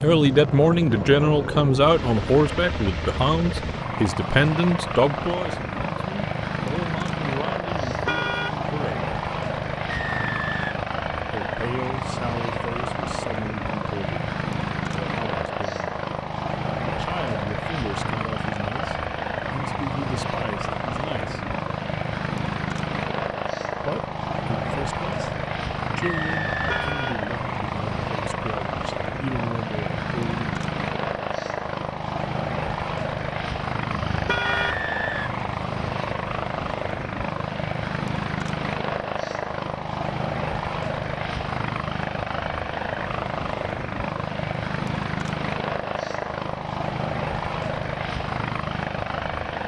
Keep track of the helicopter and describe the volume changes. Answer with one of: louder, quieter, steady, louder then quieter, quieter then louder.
steady.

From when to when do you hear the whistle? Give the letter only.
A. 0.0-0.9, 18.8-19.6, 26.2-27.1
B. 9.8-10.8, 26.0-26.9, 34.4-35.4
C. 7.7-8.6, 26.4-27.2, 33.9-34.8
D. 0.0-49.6
B.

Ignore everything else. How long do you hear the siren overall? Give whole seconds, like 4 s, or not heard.
not heard.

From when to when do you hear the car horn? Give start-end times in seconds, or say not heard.
7.7-8.6, 26.4-27.2, 33.9-34.8.